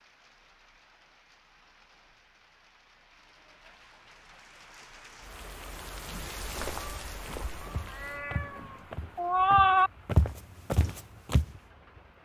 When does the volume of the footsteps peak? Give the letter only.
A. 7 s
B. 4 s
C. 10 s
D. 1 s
C.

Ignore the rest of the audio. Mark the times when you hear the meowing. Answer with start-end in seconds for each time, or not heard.
7.9-9.9.